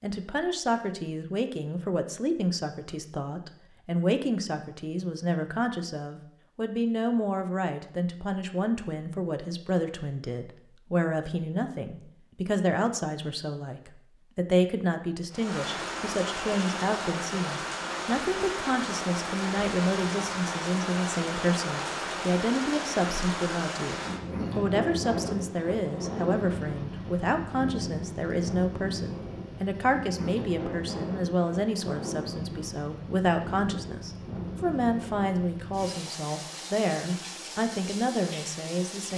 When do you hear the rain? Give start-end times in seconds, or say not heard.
15.3-39.1.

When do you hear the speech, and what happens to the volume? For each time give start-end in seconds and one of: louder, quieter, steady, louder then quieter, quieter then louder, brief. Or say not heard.
0.0-39.1 steady.